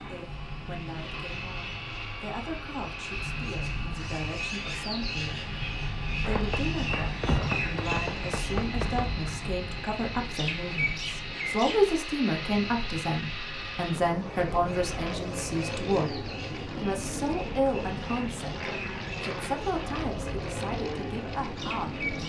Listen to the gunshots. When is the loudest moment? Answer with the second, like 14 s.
7 s.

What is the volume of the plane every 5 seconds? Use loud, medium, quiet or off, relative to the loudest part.
medium, medium, loud, loud, loud.